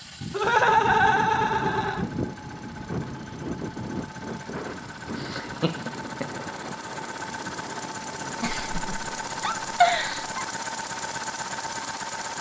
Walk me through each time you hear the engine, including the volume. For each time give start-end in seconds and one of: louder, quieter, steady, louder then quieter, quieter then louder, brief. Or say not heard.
0.0-12.3 louder.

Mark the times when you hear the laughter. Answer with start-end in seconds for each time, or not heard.
0.3-2.0, 5.2-6.5, 8.4-10.4.